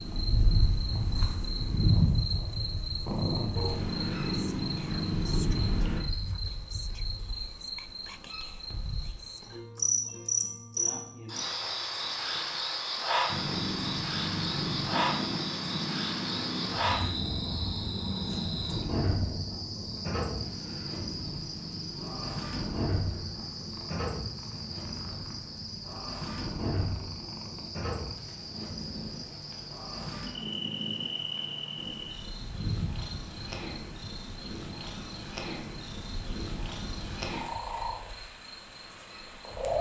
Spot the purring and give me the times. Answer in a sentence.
You can hear the purring from 0.0 to 6.0 s and from 13.2 to 39.7 s.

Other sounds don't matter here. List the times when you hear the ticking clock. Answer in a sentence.
The ticking clock can't be heard in this clip.